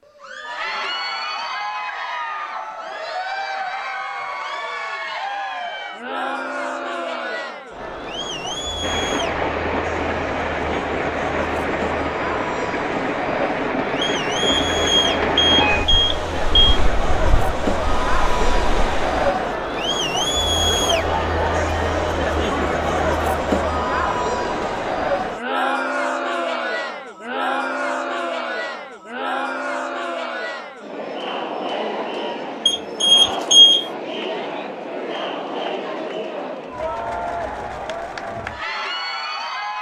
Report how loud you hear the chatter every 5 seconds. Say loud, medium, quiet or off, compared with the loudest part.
medium, medium, medium, loud, loud, loud, medium, medium.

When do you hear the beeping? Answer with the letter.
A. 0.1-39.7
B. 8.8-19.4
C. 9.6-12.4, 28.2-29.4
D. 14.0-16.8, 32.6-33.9
D.